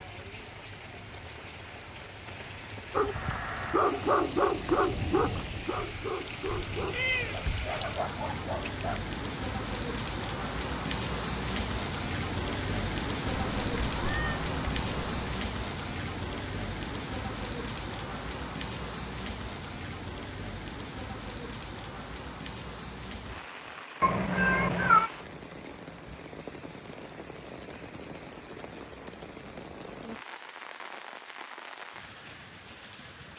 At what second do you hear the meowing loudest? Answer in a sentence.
The volume of the meowing peaks at 25 seconds.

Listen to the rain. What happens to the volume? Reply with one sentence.
The loudness of the rain goes up, then down.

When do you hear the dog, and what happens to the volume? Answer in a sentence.
The dog can be heard from 2.9 to 9.0 s, getting quieter.